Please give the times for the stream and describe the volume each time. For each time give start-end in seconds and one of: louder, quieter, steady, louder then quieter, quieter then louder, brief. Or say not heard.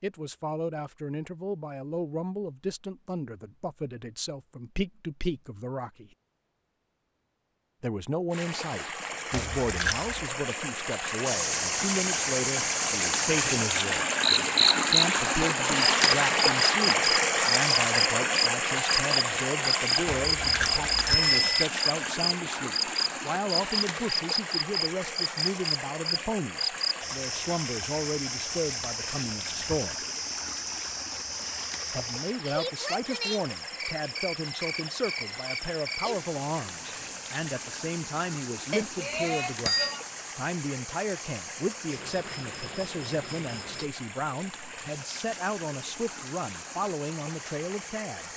8.3-48.3 quieter.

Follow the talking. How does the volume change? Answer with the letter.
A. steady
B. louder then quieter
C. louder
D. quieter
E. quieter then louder
A.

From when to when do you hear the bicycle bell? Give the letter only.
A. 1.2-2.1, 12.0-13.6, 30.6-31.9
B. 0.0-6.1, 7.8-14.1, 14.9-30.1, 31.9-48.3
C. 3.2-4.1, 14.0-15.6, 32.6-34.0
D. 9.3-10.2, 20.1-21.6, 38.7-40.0
D.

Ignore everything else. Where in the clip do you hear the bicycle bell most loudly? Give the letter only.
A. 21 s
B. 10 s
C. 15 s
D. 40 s
A.